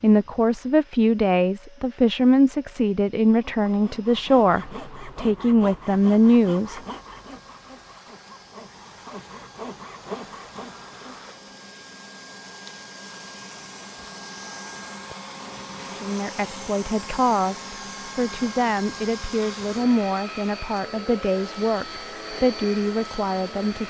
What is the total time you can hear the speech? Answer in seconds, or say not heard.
15 s.